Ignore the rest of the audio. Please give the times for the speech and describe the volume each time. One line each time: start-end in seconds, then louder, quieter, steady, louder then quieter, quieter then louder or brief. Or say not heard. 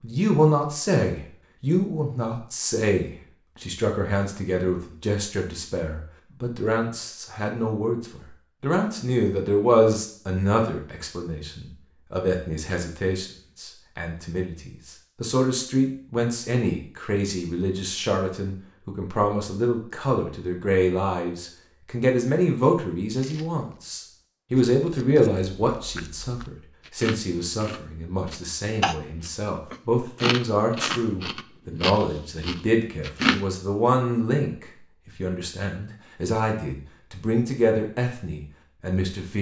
0.0-39.3 steady.